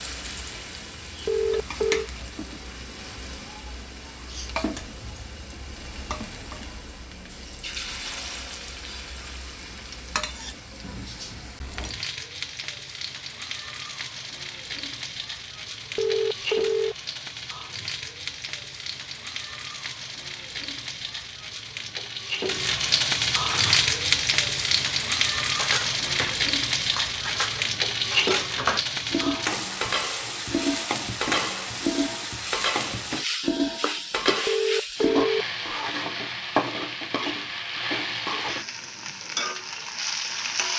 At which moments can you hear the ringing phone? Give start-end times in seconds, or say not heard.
1.2-2.1, 15.9-16.9, 34.5-35.5.